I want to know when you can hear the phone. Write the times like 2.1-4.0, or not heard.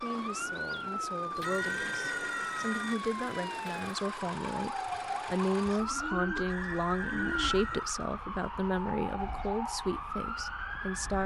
1.4-3.0, 6.5-7.9.